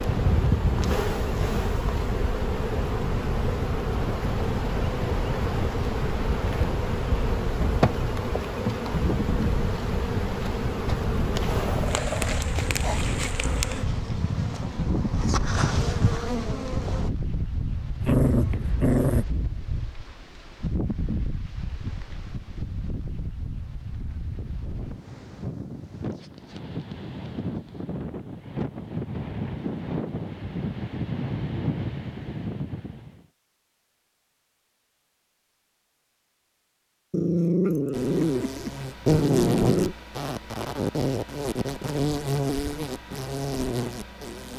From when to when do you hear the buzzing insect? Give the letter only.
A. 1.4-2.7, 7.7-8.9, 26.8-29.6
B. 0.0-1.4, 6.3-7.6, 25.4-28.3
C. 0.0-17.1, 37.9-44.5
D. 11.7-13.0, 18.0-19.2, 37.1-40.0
C.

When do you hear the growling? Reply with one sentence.
You can hear the growling from 11.7 to 13.0 s, from 18.0 to 19.2 s and from 37.1 to 40.0 s.